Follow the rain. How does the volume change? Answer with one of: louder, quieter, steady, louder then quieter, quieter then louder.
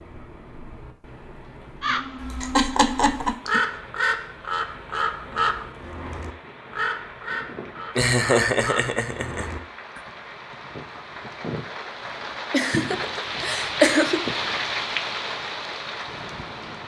louder.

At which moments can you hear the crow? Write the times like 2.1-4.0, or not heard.
1.8-10.0.